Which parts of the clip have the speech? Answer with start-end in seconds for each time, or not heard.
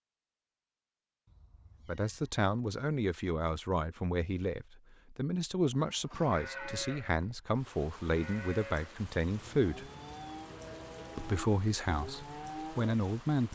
1.9-9.9, 11.2-13.5.